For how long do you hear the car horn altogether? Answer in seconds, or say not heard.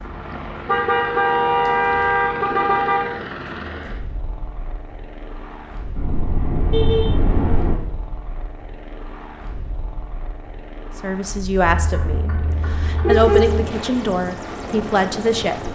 6 s.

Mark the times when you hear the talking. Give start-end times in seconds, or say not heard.
10.9-15.7.